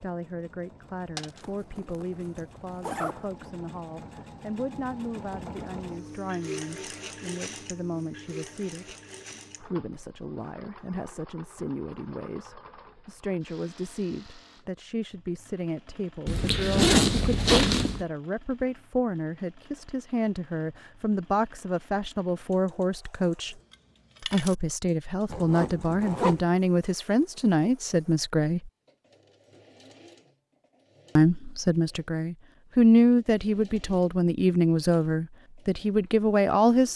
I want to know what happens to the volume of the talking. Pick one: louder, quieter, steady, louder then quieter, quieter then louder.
louder.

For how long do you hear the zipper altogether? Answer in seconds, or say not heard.
5 s.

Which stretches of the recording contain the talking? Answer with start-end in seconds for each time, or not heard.
0.0-8.9, 9.6-23.6, 24.2-28.7, 31.1-36.9.